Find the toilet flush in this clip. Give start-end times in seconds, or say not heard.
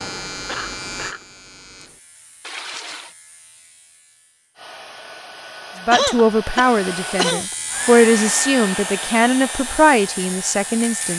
2.4-3.1.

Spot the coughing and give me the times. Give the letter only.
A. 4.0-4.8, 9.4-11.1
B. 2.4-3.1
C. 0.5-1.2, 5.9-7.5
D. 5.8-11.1
C.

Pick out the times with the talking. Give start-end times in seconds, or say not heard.
5.8-11.1.